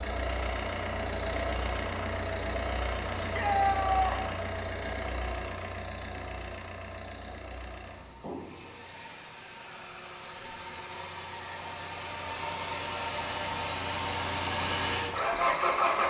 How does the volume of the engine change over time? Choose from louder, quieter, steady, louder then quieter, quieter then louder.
quieter then louder.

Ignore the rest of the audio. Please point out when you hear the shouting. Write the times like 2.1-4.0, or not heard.
3.1-4.3.